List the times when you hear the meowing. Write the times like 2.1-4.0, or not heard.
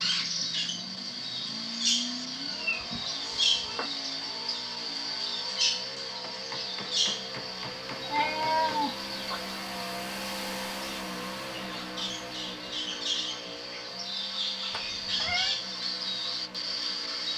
2.5-3.9, 8.0-9.4, 14.7-15.6.